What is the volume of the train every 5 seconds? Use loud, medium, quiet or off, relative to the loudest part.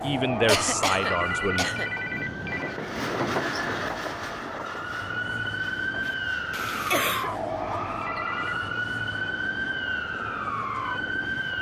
loud, medium, medium.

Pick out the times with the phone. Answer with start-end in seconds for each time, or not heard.
1.0-2.8, 8.0-8.6.